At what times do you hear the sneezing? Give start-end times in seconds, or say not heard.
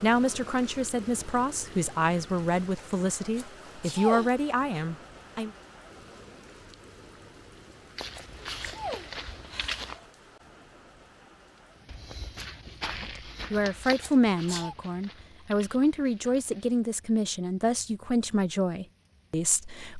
3.4-4.8, 8.2-9.9, 14.0-14.8.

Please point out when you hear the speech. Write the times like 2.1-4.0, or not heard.
0.0-5.5, 13.0-19.9.